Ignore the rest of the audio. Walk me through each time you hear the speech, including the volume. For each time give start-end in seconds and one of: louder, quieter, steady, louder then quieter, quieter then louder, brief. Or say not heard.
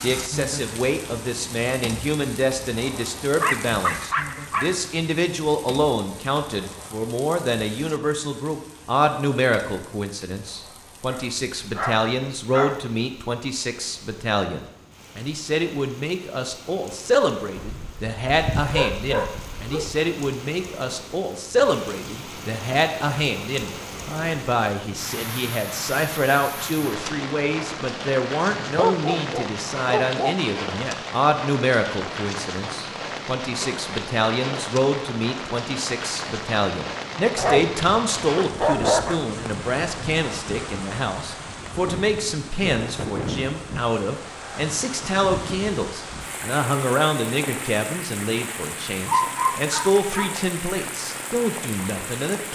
0.0-52.5 steady.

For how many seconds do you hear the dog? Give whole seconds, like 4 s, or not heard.
11 s.